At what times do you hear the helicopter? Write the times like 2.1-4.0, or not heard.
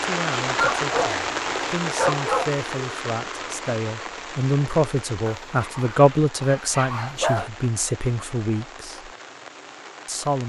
not heard.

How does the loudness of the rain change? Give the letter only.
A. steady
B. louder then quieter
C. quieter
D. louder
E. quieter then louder
C.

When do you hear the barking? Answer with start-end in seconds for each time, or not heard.
0.4-2.6, 5.2-7.5.